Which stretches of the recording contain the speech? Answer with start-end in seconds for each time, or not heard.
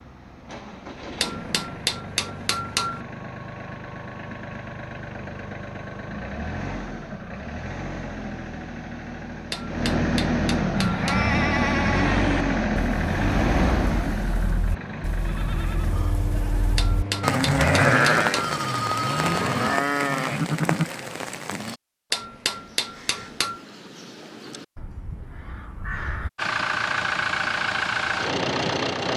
not heard.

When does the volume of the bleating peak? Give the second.
18 s.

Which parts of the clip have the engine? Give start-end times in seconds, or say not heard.
0.0-19.8, 26.4-29.1.